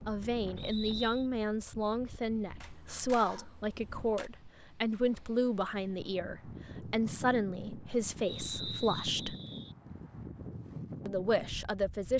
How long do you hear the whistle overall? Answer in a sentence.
You can hear the whistle for 2 seconds altogether.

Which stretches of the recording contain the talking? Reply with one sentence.
The talking can be heard from 0.1 to 9.3 s and from 11.1 to 12.1 s.